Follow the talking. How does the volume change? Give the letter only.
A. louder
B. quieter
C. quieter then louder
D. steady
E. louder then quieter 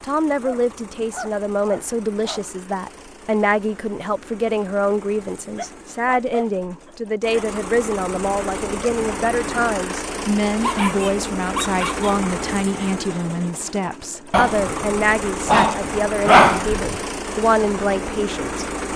D.